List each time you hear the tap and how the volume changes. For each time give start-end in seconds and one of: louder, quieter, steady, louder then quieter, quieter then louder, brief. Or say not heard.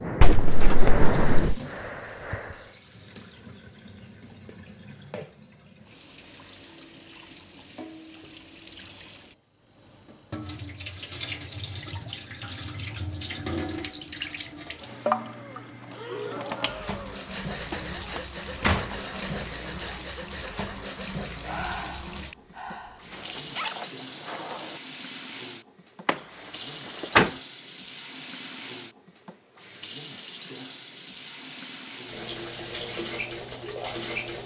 0.0-34.4 louder.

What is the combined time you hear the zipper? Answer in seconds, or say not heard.
2 s.